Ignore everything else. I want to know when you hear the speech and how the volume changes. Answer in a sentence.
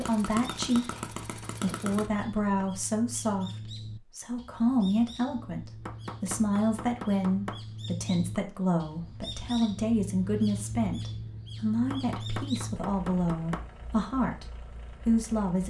You can hear the speech briefly from 0.0 to 0.9 s; from 1.6 to 14.4 s, at a steady volume; and briefly from 15.1 to 15.6 s.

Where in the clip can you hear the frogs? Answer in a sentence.
The frogs can't be heard in this clip.